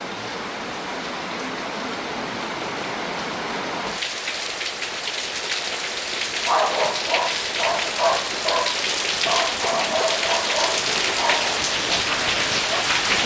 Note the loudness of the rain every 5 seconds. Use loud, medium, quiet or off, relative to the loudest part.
medium, loud, loud.